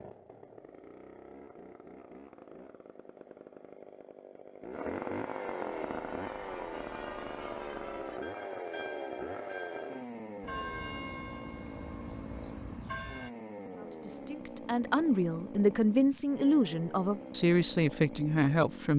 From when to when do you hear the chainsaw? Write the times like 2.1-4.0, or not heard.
0.0-18.9.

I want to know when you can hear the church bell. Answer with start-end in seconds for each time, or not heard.
5.7-13.3.